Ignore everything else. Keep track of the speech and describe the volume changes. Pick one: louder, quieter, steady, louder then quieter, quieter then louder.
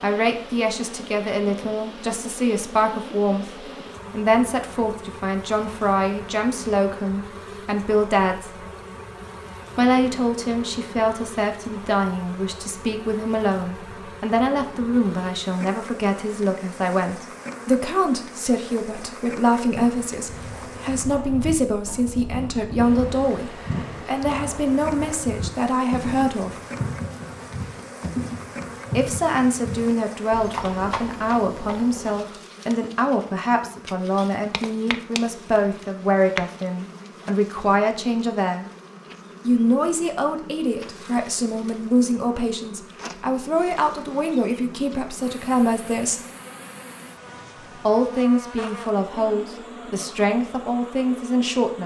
steady.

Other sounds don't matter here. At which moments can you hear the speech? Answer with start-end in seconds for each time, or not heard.
0.0-8.7, 9.8-26.6, 28.9-38.7, 39.5-46.2, 47.9-51.8.